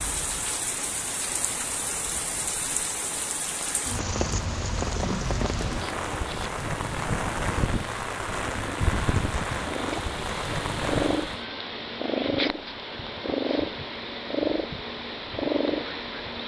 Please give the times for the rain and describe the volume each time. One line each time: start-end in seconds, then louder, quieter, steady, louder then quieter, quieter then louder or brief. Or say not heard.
0.0-11.4 steady.